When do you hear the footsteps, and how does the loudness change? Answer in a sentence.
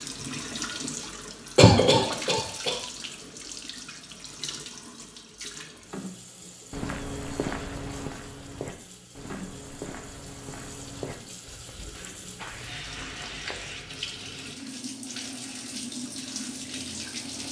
You can hear the footsteps from 6.7 to 13.8 s, getting quieter.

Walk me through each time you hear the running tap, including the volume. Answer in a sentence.
The running tap can be heard from 0.0 to 17.4 s, getting quieter then louder.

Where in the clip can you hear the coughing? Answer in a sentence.
You can hear the coughing from 1.6 to 2.8 s.